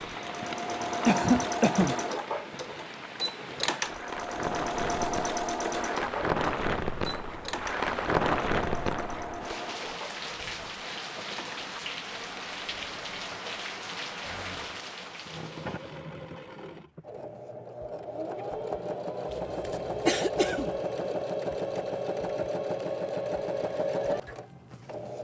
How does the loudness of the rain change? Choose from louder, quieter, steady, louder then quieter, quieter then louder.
louder then quieter.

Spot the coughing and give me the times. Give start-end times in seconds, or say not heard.
1.1-1.9, 19.3-20.7.